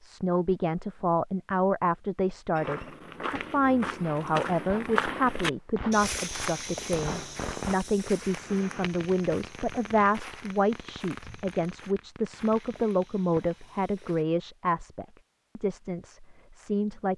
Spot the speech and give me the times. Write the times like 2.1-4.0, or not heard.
0.0-17.1.